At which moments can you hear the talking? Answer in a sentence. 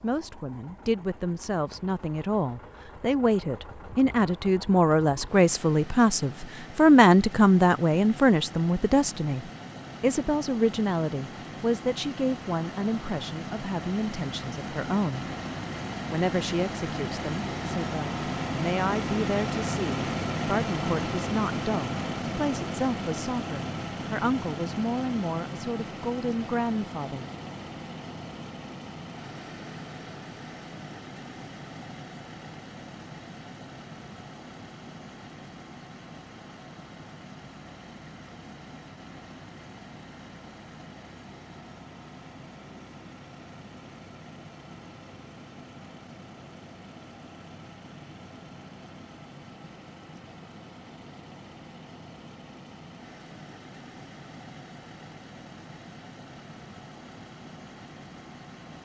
The talking can be heard from 0.0 to 15.2 s and from 16.1 to 27.2 s.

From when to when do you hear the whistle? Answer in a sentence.
The whistle can't be heard in this clip.